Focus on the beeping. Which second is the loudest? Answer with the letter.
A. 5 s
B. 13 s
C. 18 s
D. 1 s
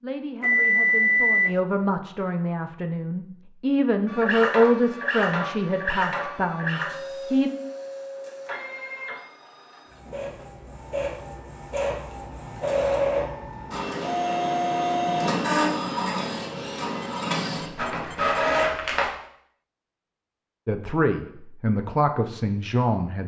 D.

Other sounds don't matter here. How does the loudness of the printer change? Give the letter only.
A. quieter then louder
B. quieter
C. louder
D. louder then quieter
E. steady
A.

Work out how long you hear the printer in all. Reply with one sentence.
You can hear the printer for 15 seconds altogether.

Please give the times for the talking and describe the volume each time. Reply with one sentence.
The talking can be heard from 0.0 to 7.5 s, getting louder then quieter; and briefly from 20.6 to 23.2 s.